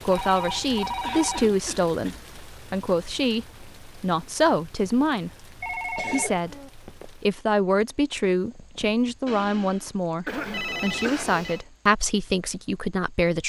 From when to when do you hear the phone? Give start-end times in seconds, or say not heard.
0.1-1.6, 5.6-7.2, 10.2-11.7.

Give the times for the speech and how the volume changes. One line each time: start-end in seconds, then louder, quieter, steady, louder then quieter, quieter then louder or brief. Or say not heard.
0.1-13.4 steady.